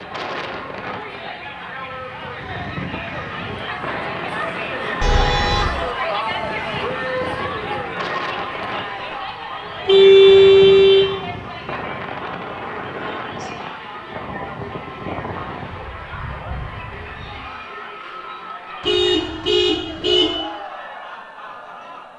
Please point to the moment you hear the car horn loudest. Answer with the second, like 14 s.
10 s.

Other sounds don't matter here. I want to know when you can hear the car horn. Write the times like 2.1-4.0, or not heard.
5.0-5.8, 9.8-11.1, 18.8-20.4.